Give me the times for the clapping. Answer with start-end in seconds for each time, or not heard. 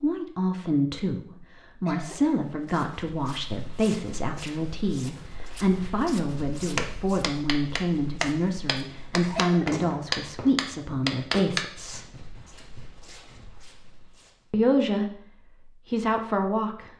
6.8-11.7.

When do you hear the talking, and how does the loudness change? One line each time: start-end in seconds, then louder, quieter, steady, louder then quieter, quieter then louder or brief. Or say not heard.
0.0-12.1 steady
14.5-16.9 brief.